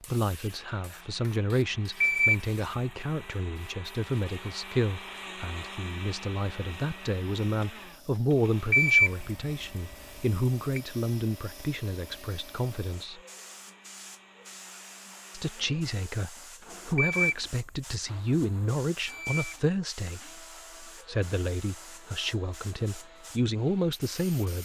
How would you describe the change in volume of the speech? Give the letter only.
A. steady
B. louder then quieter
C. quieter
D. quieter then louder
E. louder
A.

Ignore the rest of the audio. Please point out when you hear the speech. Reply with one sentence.
The speech can be heard from 0.1 to 13.2 s and from 15.3 to 24.6 s.